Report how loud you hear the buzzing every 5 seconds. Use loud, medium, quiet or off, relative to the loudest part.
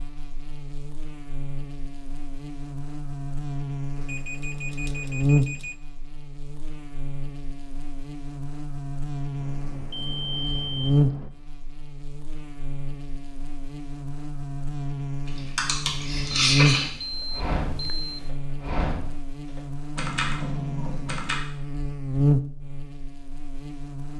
medium, loud, loud, loud, loud.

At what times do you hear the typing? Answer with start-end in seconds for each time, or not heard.
15.6-21.4.